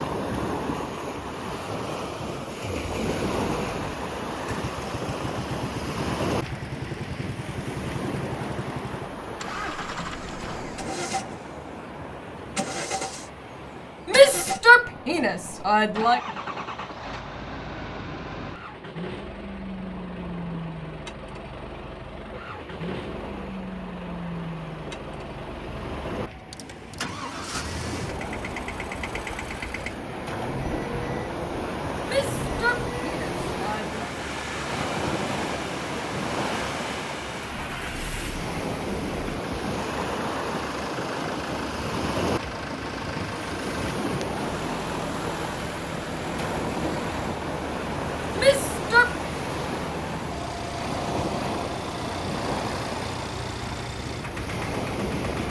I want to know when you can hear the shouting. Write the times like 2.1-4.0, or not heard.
14.1-16.2, 32.0-34.0, 48.4-49.1.